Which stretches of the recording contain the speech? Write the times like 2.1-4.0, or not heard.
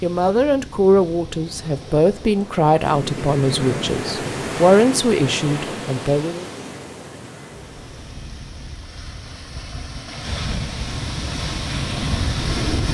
0.0-6.5.